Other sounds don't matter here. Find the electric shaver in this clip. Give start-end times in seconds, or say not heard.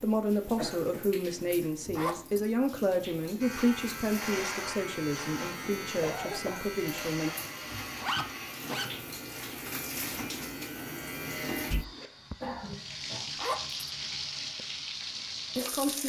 3.4-11.8.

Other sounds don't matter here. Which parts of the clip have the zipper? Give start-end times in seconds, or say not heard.
1.9-2.5, 8.0-8.9, 13.3-13.8.